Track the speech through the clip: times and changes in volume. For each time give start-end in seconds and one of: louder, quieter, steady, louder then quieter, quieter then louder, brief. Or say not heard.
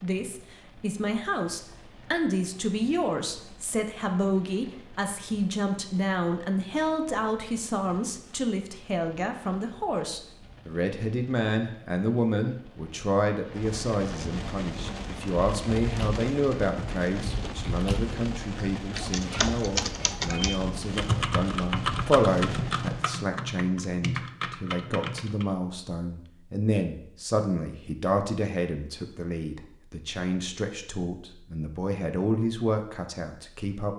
0.0-33.9 steady.